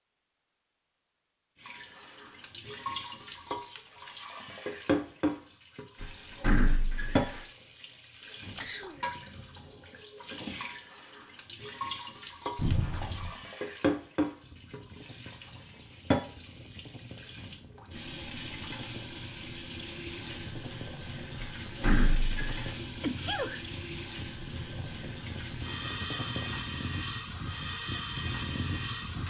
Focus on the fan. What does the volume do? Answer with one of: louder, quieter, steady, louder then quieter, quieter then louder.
louder.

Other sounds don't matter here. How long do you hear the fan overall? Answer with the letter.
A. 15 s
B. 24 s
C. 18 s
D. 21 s
A.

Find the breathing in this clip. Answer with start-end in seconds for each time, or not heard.
not heard.